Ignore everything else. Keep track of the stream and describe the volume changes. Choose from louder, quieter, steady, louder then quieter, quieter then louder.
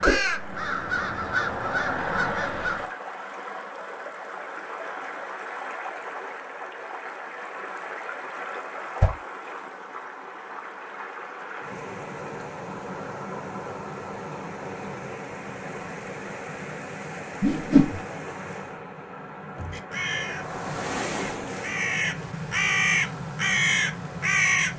steady.